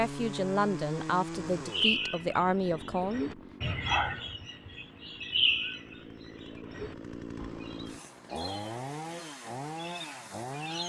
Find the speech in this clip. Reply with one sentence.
You can hear the speech from 0.0 to 3.4 s.